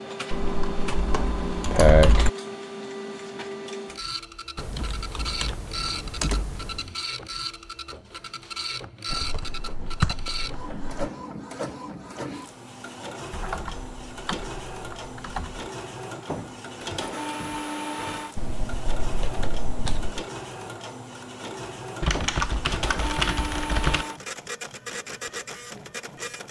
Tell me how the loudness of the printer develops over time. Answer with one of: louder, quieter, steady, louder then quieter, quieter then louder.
steady.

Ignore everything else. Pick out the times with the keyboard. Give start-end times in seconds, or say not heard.
0.3-2.3, 4.5-6.8, 9.1-11.1, 13.3-15.7, 18.4-20.2, 22.0-24.1.